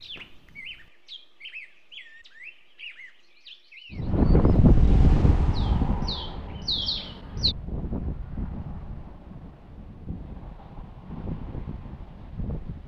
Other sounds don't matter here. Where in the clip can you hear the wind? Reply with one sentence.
You can hear the wind from 3.9 to 12.8 s.